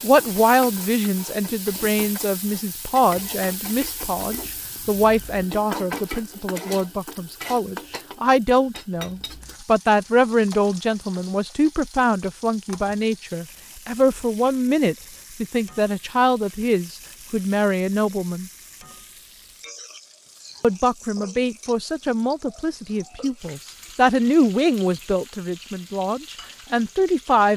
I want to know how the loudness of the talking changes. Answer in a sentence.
The loudness of the talking stays about the same.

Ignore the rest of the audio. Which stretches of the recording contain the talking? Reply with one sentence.
You can hear the talking from 0.0 to 18.5 s and from 20.6 to 27.5 s.